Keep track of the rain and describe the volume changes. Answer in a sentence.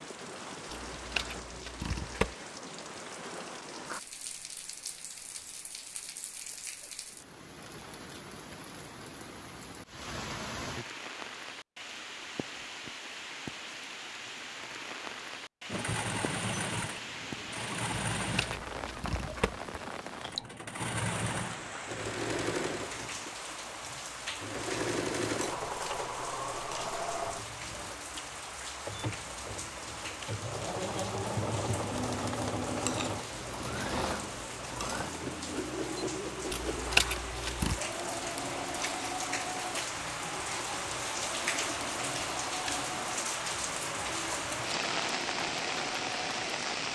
The volume of the rain goes up.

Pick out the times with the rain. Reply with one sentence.
The rain can be heard from 0.0 to 46.8 s.